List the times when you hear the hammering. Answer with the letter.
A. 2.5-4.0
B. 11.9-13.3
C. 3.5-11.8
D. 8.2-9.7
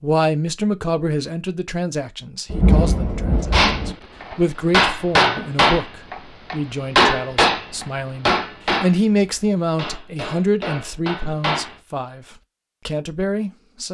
C.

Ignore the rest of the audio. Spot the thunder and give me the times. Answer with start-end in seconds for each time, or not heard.
2.5-4.0.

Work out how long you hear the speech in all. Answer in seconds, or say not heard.
14 s.